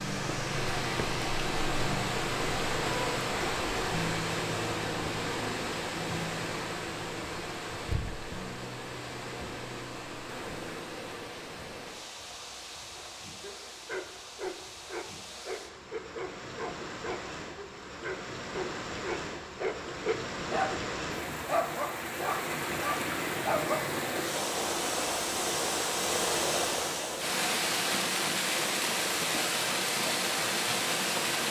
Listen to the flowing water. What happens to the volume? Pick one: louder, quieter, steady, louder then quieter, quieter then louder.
quieter then louder.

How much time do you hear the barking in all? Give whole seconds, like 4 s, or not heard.
11 s.